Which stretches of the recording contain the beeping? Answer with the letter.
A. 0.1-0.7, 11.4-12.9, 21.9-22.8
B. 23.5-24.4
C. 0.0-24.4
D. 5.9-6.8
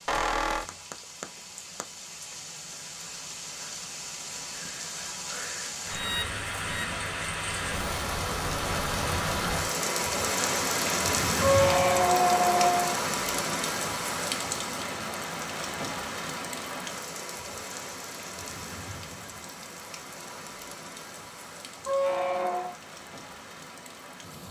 D.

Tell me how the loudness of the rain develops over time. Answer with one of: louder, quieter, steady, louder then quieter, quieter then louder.
louder then quieter.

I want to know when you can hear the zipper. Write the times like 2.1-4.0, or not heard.
not heard.